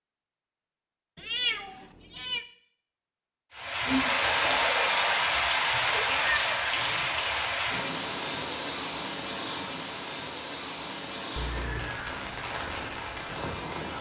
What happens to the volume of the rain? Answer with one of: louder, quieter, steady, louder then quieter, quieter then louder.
quieter.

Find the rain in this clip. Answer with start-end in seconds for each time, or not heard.
3.5-13.9.